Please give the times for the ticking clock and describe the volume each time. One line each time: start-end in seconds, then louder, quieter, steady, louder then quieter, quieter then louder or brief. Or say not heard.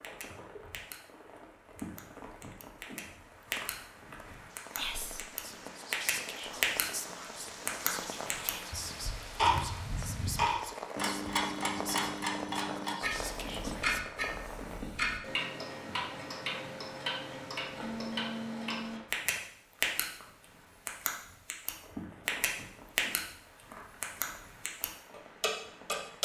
0.0-0.9 brief
1.8-3.8 brief
4.5-6.8 brief
7.7-20.1 quieter
20.9-23.2 brief
24.0-26.2 brief.